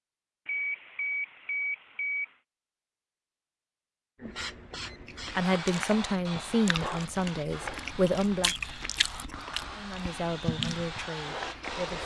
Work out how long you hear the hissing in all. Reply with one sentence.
You can hear the hissing for 8 seconds altogether.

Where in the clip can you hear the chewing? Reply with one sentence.
You can hear the chewing from 5.0 to 12.0 s.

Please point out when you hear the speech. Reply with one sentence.
The speech can be heard from 5.3 to 8.6 s and from 9.8 to 12.0 s.